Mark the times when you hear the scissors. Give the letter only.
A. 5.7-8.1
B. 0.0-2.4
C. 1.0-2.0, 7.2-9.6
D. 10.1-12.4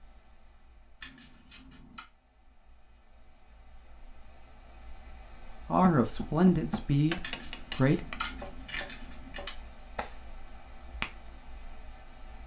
C.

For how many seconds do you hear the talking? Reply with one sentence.
You can hear the talking for 2 seconds altogether.